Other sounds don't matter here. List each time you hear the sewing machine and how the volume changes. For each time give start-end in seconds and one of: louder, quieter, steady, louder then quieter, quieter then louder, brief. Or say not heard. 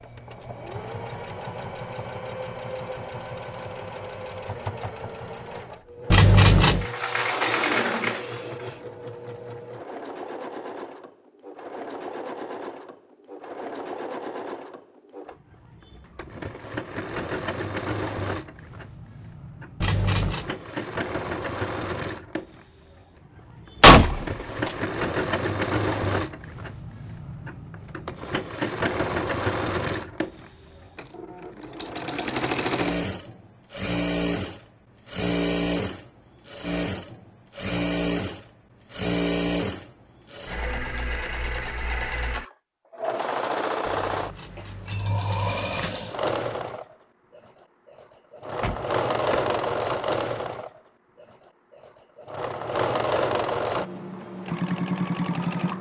0.0-55.7 louder.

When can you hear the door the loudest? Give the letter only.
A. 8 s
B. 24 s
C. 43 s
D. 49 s
B.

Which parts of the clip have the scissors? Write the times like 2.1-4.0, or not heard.
6.1-6.8, 19.8-20.5, 43.9-46.0.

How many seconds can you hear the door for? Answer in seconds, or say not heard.
4 s.